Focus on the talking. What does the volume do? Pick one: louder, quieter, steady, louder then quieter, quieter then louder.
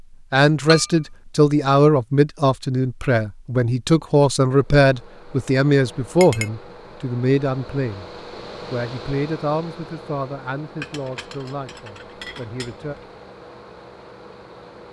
quieter.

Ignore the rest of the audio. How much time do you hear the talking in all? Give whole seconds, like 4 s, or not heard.
12 s.